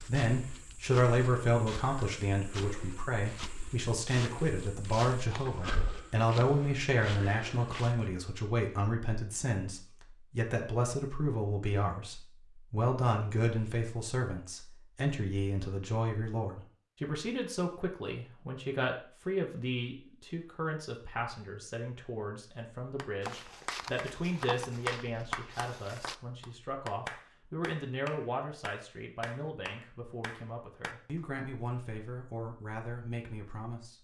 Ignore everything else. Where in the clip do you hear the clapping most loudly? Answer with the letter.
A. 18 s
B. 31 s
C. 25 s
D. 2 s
C.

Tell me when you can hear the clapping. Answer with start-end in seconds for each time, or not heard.
22.8-31.2.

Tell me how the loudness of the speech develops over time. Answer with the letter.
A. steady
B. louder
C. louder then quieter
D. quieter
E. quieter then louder
D.